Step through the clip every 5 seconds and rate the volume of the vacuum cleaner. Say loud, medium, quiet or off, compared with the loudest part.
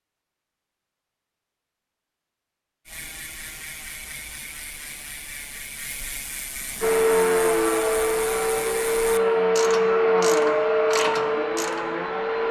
off, loud, loud.